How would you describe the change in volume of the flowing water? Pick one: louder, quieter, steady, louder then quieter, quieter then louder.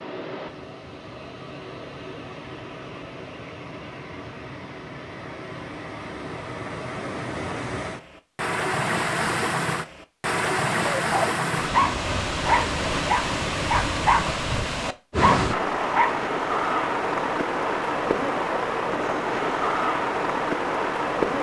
louder.